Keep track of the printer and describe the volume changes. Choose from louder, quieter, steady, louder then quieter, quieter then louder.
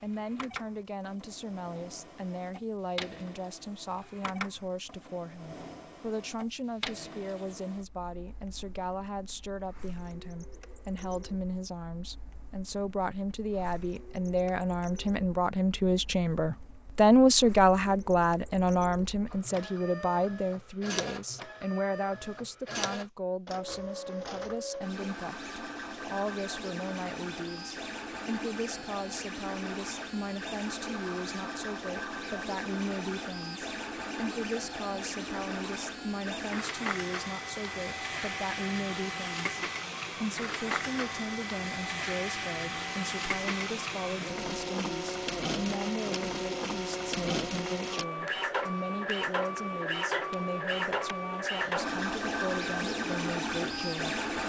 louder.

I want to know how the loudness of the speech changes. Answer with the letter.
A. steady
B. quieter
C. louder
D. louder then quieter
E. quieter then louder
D.